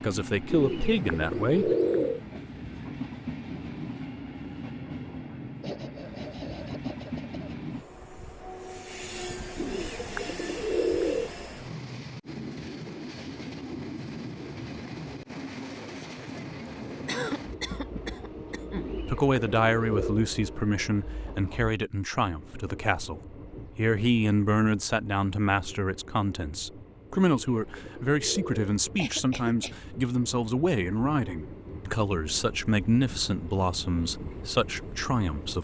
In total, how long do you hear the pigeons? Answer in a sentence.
The pigeons can be heard for 7 seconds in total.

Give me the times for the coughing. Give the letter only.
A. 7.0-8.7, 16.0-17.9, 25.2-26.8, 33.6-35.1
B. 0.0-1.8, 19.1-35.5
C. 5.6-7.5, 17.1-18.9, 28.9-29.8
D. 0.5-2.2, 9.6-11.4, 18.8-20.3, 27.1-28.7
C.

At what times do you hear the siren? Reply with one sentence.
You can't hear the siren here.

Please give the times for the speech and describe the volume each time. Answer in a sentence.
The speech can be heard briefly from 0.0 to 1.8 s; and from 19.1 to 35.5 s, at a steady volume.